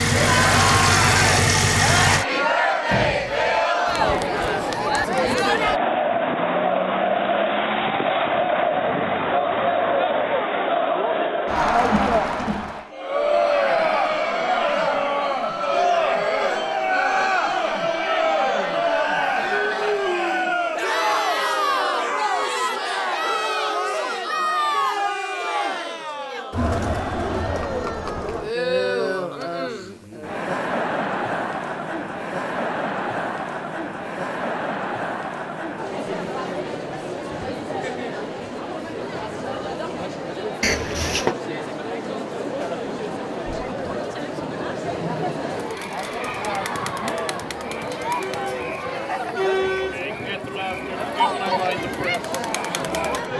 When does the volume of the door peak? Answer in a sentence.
The loudest moment of the door is at 41 seconds.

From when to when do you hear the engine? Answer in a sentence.
You can hear the engine from 0.0 to 2.2 s.